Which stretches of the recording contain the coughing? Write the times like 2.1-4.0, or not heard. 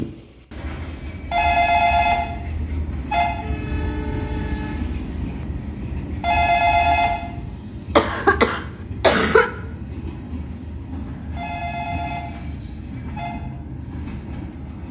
8.0-9.5.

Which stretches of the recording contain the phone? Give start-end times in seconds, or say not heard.
1.3-3.2, 6.2-7.2, 11.3-13.3.